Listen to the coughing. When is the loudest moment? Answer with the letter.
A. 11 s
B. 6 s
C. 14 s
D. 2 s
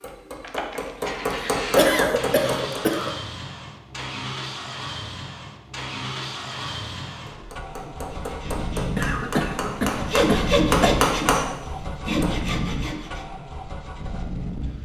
D.